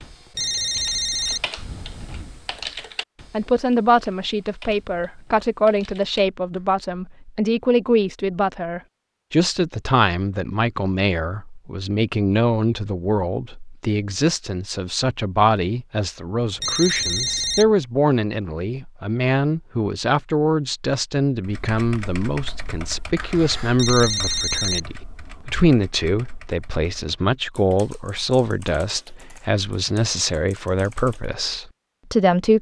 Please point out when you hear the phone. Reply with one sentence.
The phone can be heard from 0.3 to 1.5 s, from 16.6 to 17.8 s and from 23.8 to 24.9 s.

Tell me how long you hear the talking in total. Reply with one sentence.
You can hear the talking for 29 seconds altogether.